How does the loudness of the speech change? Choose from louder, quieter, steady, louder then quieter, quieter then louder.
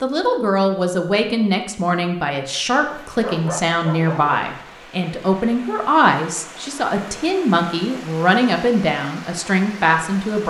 steady.